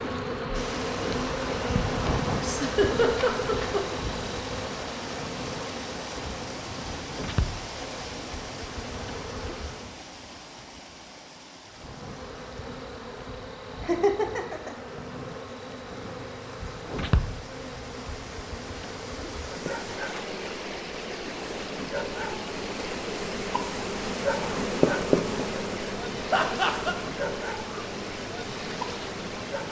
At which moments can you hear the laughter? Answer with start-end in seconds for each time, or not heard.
2.4-3.8, 13.8-14.8, 26.3-26.9.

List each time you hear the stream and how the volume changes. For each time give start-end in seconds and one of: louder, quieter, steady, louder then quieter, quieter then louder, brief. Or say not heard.
0.0-29.6 quieter then louder.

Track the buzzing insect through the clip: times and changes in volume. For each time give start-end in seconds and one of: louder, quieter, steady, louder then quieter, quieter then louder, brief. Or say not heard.
0.0-9.9 quieter
11.7-29.6 louder then quieter.